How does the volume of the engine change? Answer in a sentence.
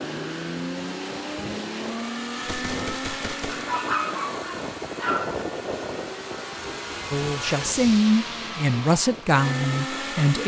The volume of the engine goes down, then up.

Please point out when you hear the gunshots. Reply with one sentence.
The gunshots can be heard from 2.5 to 3.7 s.